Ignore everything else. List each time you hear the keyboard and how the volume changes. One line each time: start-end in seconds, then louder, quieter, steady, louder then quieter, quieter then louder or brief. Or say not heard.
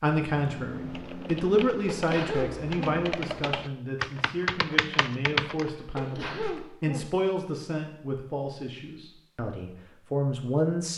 0.3-5.7 louder.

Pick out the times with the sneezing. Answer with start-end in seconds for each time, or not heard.
1.7-2.8, 5.6-7.0.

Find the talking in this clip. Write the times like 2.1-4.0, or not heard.
0.0-10.9.